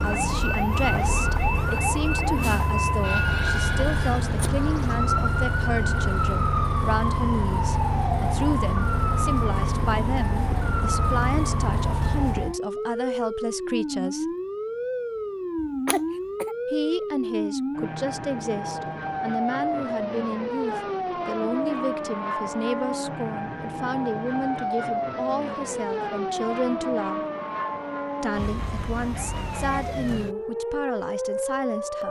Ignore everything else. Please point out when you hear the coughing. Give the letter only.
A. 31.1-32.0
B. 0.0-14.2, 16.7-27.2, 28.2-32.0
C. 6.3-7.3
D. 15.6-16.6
D.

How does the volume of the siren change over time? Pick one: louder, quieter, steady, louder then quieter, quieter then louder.
steady.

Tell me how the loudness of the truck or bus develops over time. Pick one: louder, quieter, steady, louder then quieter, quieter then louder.
steady.